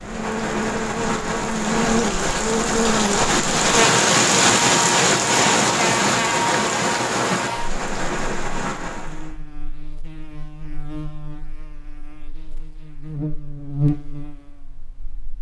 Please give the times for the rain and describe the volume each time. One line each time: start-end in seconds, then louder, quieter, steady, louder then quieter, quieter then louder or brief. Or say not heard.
0.0-9.3 louder then quieter.